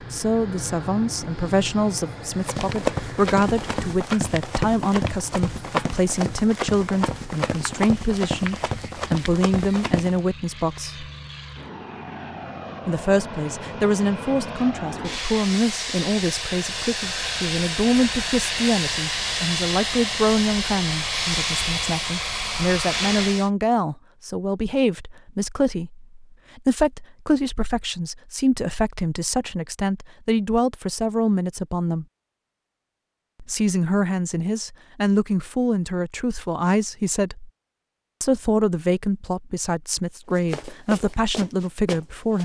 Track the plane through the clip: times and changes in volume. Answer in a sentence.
You can hear the plane from 0.0 to 23.5 s, getting quieter then louder.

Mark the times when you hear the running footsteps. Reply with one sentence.
You can hear the running footsteps from 2.4 to 10.2 s and from 40.2 to 42.4 s.